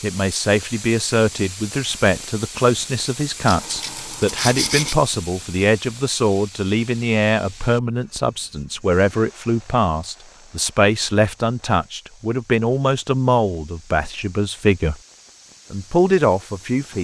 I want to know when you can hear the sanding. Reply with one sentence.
You can hear the sanding from 3.5 to 5.0 s.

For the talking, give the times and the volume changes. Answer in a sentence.
You can hear the talking from 0.0 to 14.9 s, at a steady volume; and briefly from 15.7 to 16.9 s.